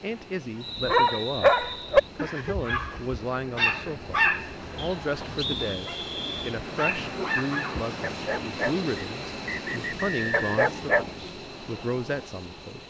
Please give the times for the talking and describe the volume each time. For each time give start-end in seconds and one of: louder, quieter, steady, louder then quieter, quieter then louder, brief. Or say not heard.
0.0-12.8 steady.